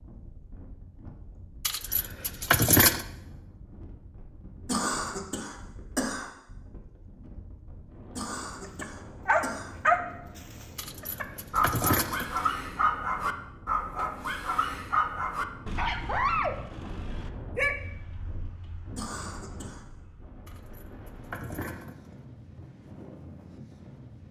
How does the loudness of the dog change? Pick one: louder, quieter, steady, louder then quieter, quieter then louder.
quieter.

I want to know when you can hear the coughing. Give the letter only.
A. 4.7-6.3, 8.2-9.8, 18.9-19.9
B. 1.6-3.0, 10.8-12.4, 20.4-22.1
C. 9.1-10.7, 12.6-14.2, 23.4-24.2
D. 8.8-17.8
A.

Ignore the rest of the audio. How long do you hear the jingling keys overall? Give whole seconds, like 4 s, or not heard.
5 s.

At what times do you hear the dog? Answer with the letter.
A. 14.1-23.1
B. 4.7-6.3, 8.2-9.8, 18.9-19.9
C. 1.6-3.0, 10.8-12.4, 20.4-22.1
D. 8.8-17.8
D.